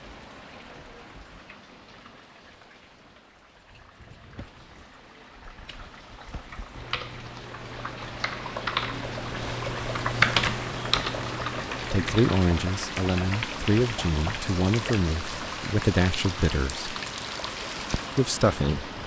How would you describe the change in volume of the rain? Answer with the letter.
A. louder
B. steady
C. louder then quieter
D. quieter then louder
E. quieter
A.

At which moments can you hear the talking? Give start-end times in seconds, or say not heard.
11.9-16.9, 18.1-18.9.